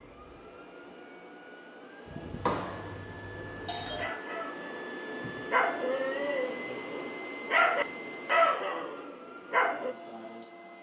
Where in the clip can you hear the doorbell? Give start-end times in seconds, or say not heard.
2.3-4.0.